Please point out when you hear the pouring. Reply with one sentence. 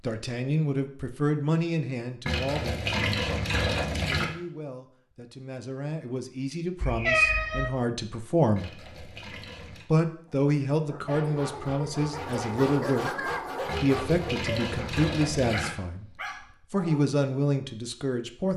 You can hear the pouring from 2.2 to 4.2 s, from 8.6 to 9.8 s and from 13.7 to 15.7 s.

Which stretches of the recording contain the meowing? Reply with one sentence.
You can hear the meowing from 6.8 to 7.7 s.